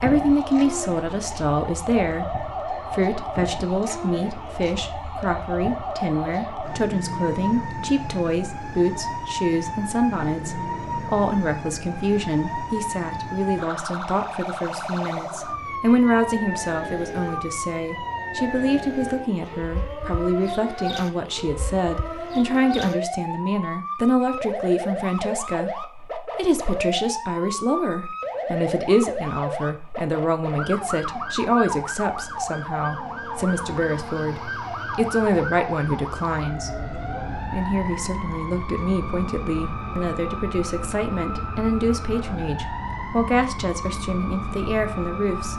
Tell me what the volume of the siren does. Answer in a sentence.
The loudness of the siren stays about the same.